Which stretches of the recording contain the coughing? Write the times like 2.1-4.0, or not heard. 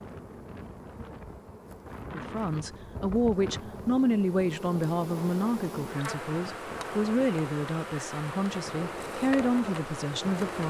not heard.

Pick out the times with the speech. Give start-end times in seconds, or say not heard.
2.0-10.6.